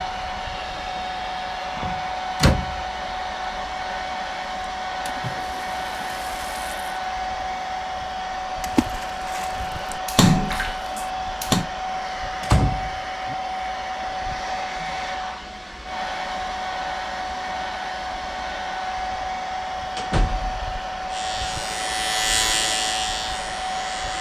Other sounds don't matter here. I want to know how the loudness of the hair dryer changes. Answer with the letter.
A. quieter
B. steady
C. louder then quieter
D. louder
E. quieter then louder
B.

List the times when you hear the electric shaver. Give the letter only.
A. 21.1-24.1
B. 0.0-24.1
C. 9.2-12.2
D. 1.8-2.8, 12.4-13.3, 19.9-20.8
A.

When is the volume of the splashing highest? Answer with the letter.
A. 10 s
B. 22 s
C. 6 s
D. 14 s
A.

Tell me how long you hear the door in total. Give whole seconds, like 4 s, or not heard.
3 s.